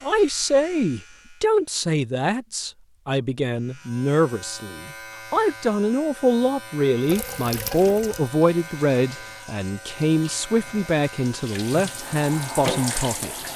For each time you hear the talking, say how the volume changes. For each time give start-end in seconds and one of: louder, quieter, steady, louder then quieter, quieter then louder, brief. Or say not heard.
0.0-13.5 steady.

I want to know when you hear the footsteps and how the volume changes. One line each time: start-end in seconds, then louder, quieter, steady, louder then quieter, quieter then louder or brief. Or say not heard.
not heard.